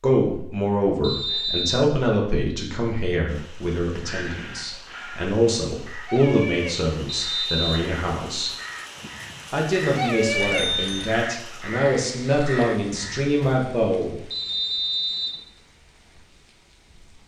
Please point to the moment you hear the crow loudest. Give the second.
10 s.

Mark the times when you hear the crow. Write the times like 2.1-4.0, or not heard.
3.9-13.3.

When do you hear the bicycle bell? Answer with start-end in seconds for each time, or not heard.
10.4-11.1.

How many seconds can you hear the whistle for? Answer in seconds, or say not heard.
3 s.